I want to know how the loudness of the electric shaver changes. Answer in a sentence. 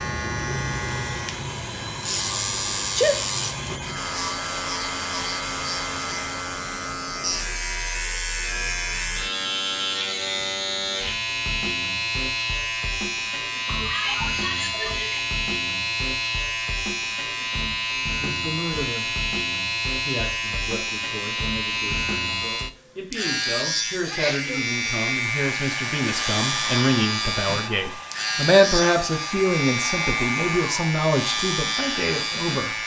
The volume of the electric shaver stays about the same.